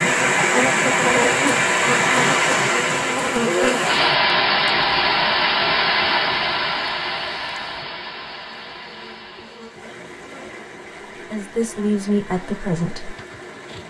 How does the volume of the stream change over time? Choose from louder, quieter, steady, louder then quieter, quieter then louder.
quieter.